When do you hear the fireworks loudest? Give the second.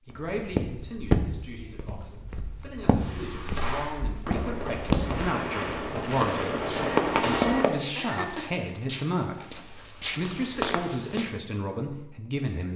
7 s.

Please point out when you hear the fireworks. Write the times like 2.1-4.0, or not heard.
3.0-8.4.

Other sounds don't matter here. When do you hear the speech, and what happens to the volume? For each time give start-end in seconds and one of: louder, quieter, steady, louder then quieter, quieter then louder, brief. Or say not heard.
0.1-12.7 louder.